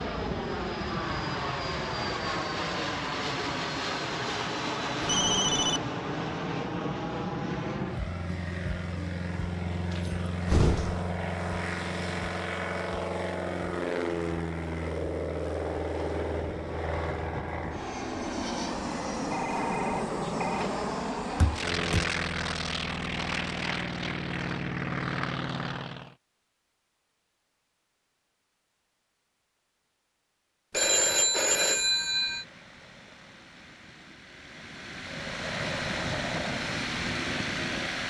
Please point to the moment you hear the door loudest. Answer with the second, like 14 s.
11 s.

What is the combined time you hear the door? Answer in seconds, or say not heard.
2 s.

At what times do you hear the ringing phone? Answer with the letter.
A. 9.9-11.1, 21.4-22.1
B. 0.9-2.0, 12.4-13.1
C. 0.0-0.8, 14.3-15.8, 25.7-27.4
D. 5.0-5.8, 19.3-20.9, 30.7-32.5
D.